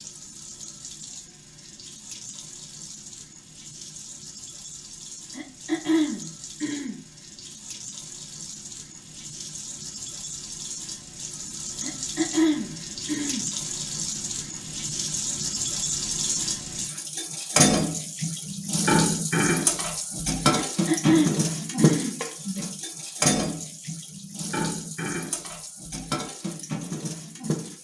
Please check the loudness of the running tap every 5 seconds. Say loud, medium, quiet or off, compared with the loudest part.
quiet, quiet, medium, loud, loud, medium.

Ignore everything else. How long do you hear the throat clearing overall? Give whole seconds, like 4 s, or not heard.
5 s.